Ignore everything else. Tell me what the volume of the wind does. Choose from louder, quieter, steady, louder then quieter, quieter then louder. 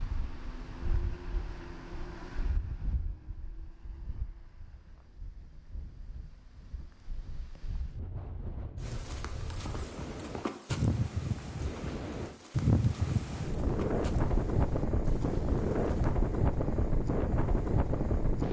quieter then louder.